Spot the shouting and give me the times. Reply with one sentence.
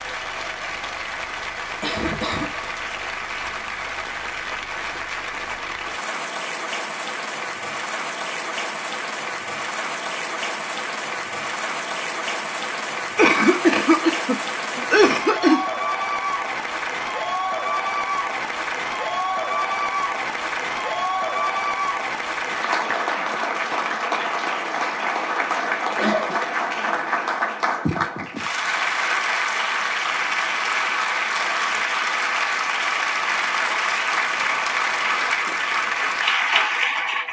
The shouting can't be heard in this clip.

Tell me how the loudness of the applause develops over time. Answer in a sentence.
The loudness of the applause goes up.